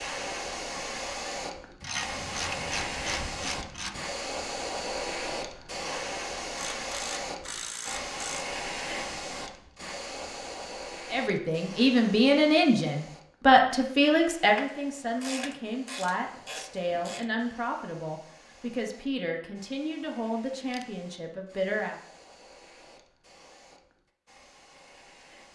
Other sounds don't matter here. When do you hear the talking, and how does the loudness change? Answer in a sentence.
The talking can be heard from 11.1 to 21.9 s, getting quieter.